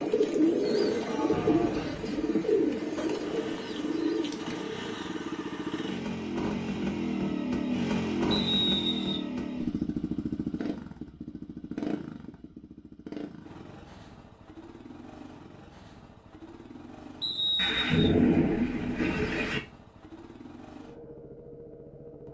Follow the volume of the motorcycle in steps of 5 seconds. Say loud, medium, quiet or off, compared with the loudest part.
medium, loud, medium, quiet, quiet.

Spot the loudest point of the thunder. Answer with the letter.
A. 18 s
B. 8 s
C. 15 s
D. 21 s
A.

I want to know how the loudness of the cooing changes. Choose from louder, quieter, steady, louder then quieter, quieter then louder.
quieter.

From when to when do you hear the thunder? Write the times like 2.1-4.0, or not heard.
17.6-19.6.